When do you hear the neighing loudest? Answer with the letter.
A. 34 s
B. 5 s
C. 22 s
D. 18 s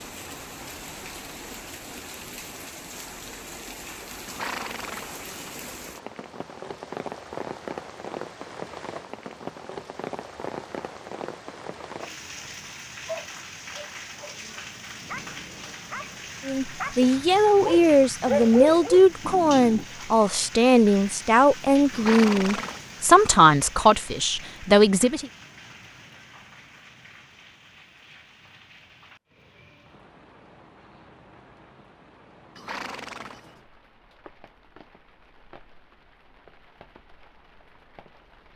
C.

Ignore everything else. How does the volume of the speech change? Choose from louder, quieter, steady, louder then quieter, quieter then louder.
steady.